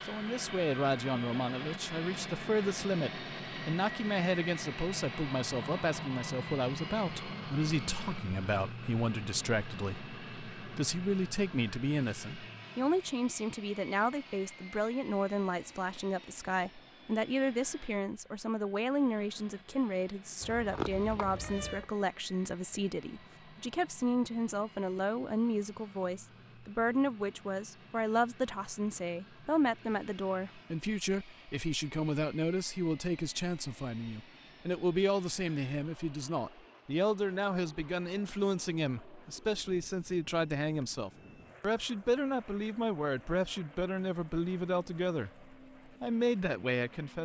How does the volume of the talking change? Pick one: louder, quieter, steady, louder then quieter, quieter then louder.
steady.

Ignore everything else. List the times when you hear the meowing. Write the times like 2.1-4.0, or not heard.
20.4-21.9.